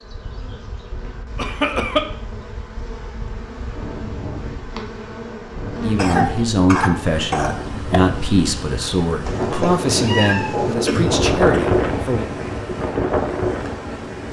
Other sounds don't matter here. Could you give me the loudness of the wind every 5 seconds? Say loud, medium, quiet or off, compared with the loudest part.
quiet, medium, loud.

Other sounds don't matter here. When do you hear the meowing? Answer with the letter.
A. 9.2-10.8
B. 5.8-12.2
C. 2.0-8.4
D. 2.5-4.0
A.